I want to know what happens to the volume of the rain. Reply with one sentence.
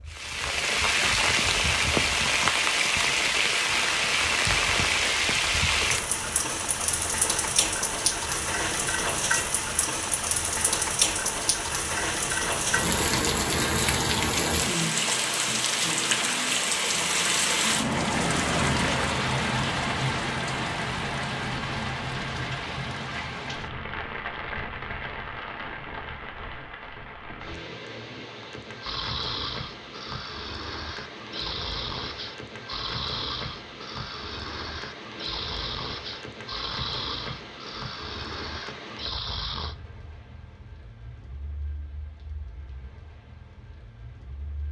The volume of the rain goes down.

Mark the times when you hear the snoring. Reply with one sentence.
The snoring can be heard from 28.8 to 39.8 s.